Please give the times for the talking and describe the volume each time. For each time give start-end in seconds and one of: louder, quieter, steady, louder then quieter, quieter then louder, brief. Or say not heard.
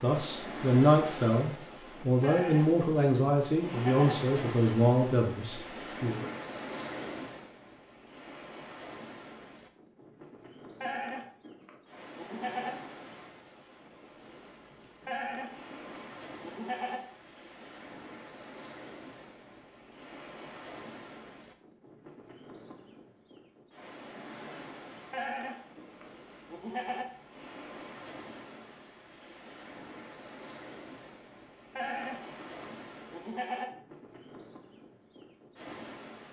0.0-6.3 steady.